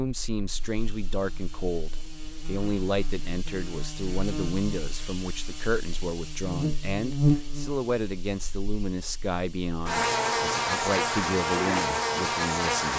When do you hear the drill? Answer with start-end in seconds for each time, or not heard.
not heard.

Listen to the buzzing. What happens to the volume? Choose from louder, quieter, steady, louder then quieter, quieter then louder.
louder.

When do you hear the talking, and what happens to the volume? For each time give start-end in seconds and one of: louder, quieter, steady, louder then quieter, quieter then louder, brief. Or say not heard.
0.0-12.9 steady.